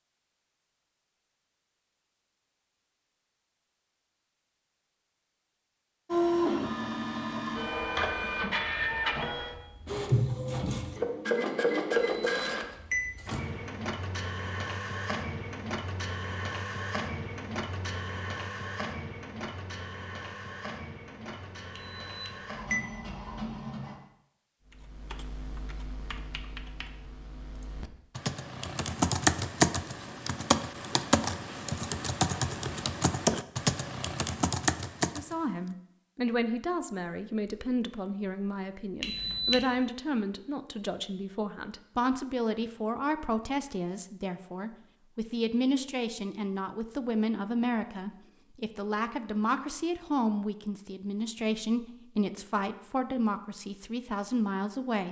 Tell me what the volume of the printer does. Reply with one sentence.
The volume of the printer goes down.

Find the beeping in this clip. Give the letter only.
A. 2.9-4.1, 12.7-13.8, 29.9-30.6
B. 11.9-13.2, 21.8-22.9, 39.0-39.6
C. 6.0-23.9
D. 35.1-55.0
B.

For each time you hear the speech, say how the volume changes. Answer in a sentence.
You can hear the speech from 35.1 to 55.0 s, at a steady volume.